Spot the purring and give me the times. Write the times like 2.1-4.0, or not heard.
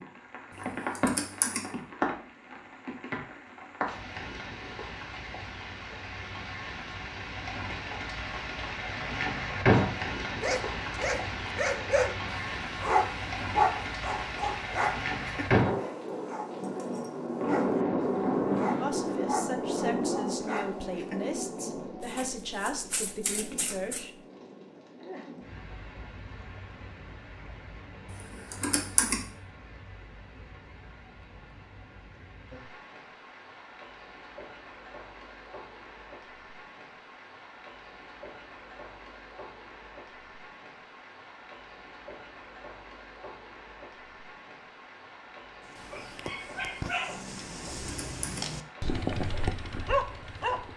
not heard.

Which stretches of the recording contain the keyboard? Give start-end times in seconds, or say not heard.
0.5-1.6, 28.5-29.2, 47.8-48.5.